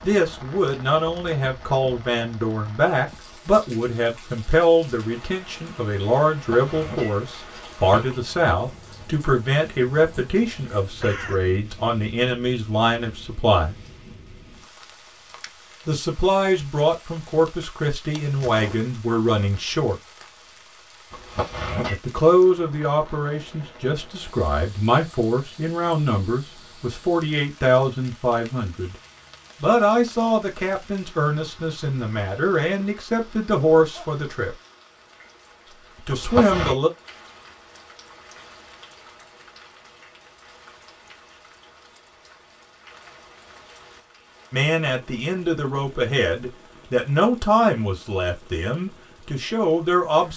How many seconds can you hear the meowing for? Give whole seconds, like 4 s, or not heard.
3 s.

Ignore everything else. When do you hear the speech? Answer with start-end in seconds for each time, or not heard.
0.0-13.8, 15.8-20.0, 21.9-28.9, 29.6-34.5, 36.0-36.9, 44.5-50.3.